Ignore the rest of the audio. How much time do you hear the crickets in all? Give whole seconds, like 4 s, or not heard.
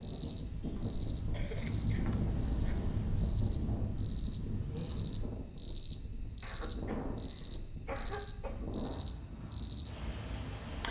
11 s.